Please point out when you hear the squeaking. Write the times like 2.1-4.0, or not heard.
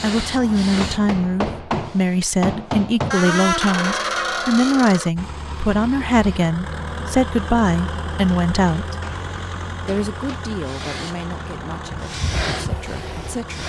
3.1-5.1.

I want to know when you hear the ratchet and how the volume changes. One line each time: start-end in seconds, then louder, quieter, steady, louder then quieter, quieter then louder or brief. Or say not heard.
not heard.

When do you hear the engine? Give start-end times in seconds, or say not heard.
5.2-13.6.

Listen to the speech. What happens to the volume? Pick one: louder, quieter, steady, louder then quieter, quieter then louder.
quieter.